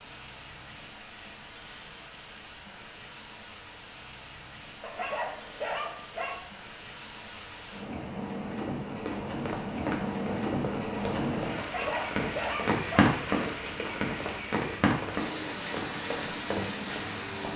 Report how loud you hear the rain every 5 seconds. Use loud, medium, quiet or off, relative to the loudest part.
quiet, medium, loud, medium.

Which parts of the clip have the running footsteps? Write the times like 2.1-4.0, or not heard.
9.1-17.5.